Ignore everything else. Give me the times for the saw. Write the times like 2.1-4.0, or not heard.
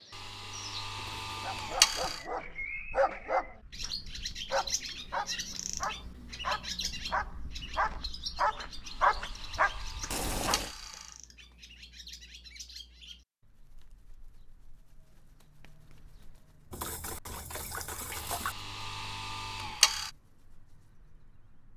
0.1-2.2, 8.8-11.2, 18.1-20.1.